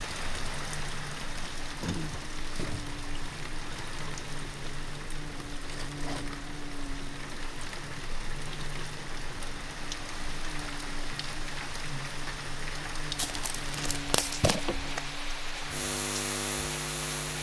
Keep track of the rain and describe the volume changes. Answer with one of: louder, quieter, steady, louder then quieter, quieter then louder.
steady.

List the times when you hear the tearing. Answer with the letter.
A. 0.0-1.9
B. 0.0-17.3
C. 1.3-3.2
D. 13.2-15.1
D.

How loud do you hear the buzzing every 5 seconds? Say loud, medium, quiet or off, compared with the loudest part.
medium, medium, medium, loud.